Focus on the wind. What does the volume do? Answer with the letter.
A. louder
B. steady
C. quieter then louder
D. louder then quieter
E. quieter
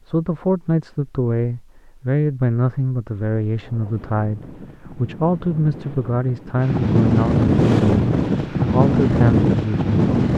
A.